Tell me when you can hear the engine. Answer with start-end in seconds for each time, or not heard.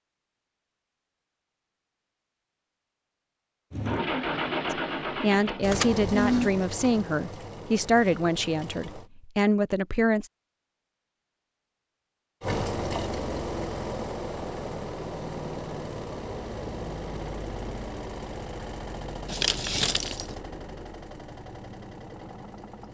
3.7-9.1, 12.4-22.8.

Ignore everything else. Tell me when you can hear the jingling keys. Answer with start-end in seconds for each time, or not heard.
5.6-6.5, 19.2-20.4.